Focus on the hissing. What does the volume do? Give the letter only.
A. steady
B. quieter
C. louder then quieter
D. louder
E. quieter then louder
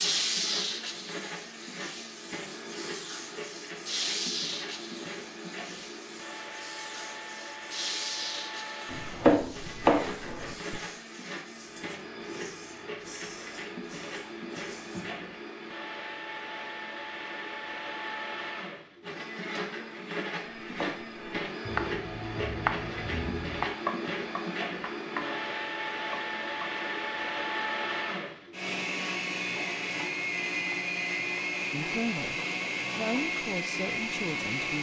B.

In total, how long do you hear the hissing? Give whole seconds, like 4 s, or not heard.
15 s.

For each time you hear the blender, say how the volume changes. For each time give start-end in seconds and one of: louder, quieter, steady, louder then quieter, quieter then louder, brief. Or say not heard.
0.0-34.7 louder.